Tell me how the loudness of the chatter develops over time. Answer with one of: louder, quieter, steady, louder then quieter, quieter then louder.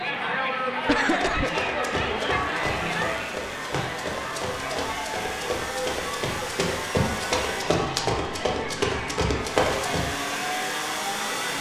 quieter.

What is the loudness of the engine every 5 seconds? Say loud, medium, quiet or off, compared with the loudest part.
medium, medium, loud.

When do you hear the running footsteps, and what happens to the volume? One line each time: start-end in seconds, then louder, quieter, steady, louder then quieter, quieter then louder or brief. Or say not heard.
1.1-10.2 louder.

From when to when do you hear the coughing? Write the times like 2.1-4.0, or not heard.
0.8-1.5.